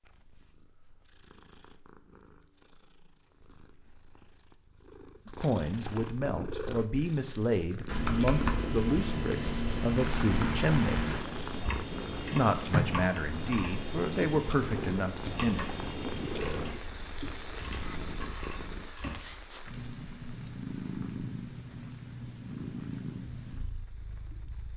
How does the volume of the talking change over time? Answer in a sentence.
The volume of the talking stays about the same.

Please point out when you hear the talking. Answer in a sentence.
You can hear the talking from 5.2 to 11.1 s and from 12.3 to 15.7 s.